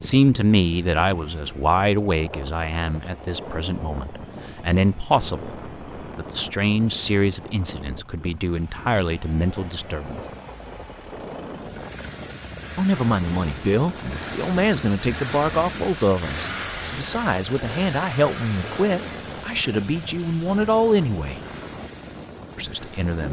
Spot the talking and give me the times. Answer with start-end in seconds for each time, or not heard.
0.0-10.2, 12.8-21.4, 22.6-23.2.